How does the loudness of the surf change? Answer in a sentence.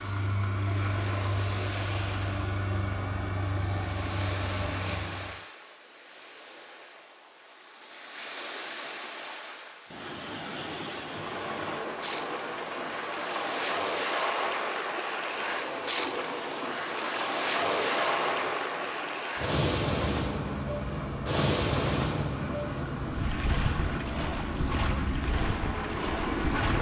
The loudness of the surf goes up.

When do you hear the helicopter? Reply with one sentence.
You can hear the helicopter from 0.0 to 5.4 s and from 10.9 to 26.7 s.